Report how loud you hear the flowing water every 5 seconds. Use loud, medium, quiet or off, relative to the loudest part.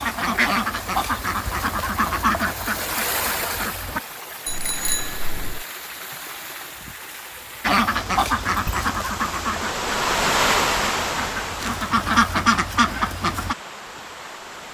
medium, medium, loud.